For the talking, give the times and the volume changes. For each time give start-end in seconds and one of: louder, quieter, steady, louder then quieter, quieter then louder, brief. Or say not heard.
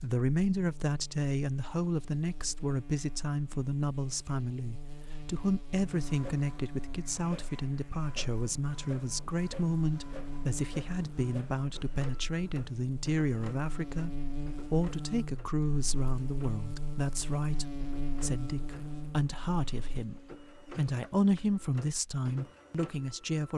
0.0-23.5 steady.